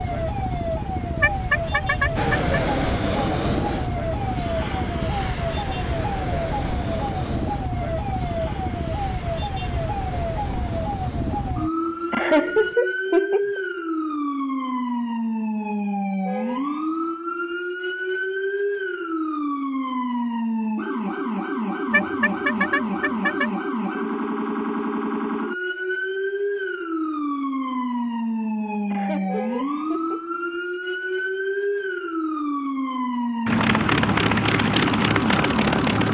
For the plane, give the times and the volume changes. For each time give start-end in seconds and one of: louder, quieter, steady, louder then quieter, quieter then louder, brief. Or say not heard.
2.1-12.8 quieter
33.5-36.0 brief.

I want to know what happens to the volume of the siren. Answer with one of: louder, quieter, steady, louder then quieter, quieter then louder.
steady.